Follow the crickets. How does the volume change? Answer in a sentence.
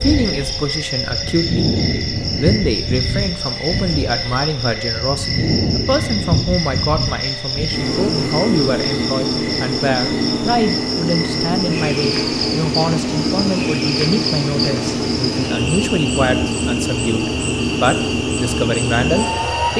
The volume of the crickets stays about the same.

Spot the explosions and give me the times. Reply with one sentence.
You can't hear the explosions here.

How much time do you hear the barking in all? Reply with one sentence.
The barking can't be heard in this clip.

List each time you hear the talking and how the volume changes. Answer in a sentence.
The talking can be heard from 0.0 to 19.7 s, at a steady volume.